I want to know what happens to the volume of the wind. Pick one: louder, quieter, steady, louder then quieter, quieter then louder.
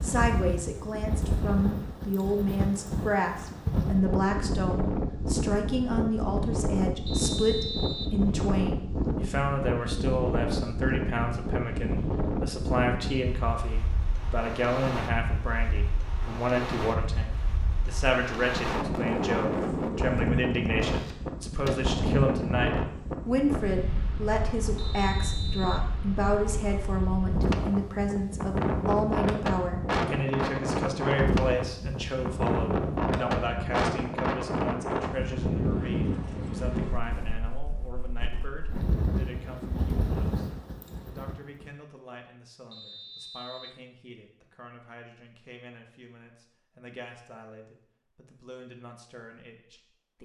steady.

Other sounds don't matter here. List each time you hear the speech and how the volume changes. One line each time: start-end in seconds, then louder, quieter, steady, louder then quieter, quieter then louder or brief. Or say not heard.
0.0-50.1 quieter.